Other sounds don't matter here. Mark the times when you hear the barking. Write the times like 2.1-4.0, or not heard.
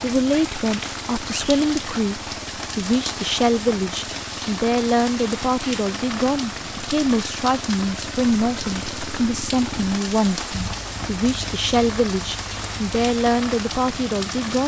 not heard.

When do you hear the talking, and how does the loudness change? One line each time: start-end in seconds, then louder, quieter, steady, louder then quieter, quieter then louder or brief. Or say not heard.
0.0-14.6 steady.